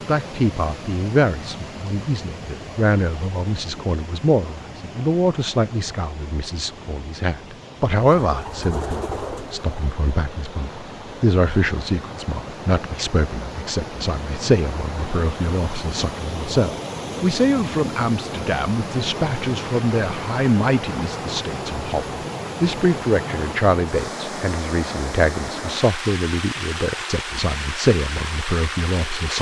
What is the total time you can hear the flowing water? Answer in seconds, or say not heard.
29 s.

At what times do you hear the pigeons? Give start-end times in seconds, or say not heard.
8.2-9.9.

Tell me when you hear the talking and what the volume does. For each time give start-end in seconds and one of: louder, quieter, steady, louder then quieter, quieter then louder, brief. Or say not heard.
0.1-29.3 steady.